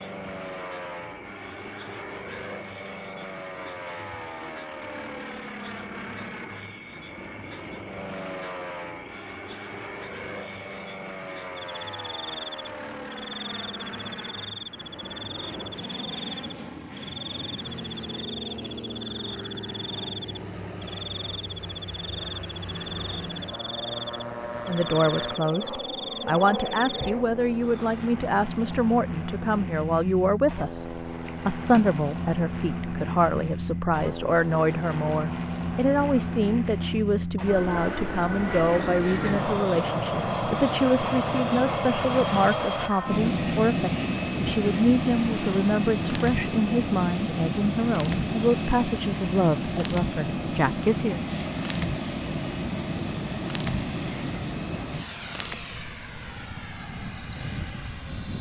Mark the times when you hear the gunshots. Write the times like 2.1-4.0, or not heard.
not heard.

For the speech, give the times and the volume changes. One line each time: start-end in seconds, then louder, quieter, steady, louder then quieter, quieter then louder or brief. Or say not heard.
24.6-51.2 steady.